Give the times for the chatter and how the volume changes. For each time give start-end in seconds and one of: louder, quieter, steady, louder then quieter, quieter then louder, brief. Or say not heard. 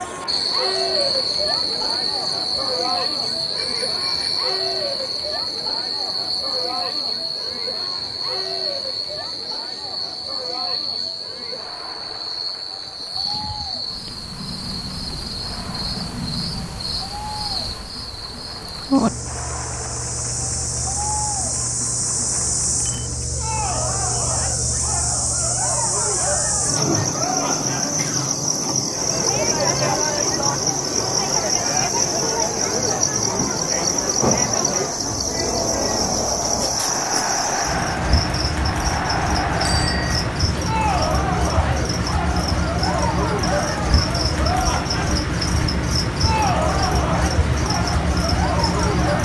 0.0-49.2 quieter then louder.